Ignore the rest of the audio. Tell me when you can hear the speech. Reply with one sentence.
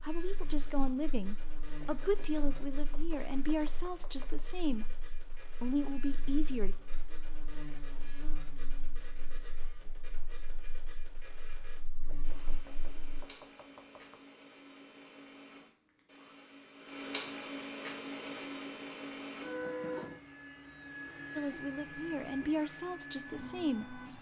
The speech can be heard from 0.0 to 5.0 s, from 5.6 to 6.8 s and from 21.4 to 24.0 s.